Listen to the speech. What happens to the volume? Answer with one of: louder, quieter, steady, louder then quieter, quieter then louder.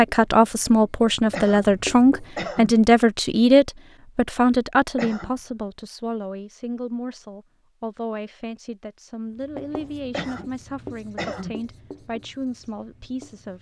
quieter.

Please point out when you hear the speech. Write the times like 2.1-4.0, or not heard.
0.0-13.5.